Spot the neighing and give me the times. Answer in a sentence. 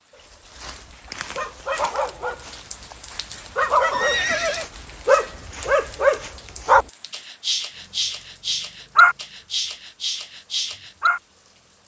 You can hear the neighing from 3.9 to 4.7 s.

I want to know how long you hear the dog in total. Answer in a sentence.
You can hear the dog for 11 seconds altogether.